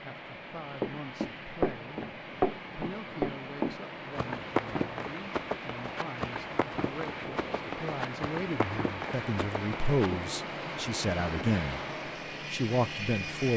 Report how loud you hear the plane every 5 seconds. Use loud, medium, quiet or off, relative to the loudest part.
medium, loud, loud.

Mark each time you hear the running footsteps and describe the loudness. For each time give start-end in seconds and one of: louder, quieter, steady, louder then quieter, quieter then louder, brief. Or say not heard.
0.8-10.2 quieter.